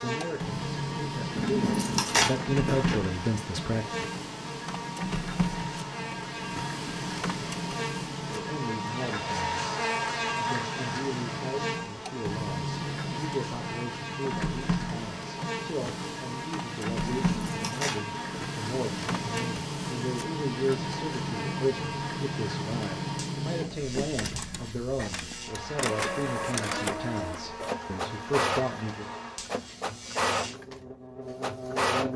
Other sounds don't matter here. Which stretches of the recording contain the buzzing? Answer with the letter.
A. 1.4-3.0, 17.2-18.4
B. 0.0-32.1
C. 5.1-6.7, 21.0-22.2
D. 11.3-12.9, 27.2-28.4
B.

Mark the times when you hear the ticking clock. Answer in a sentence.
The ticking clock can't be heard in this clip.